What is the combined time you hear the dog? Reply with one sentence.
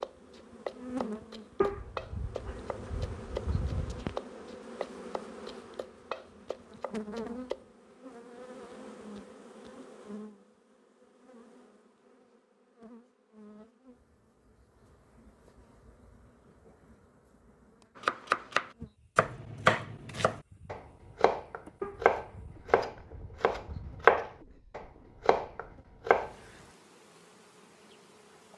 You can hear the dog for 5 seconds altogether.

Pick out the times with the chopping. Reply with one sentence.
The chopping can be heard from 0.0 to 7.7 s and from 18.0 to 26.4 s.